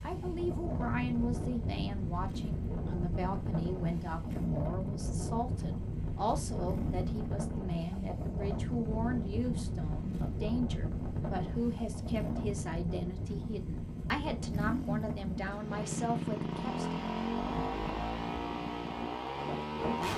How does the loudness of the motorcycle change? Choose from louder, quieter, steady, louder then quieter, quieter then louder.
louder.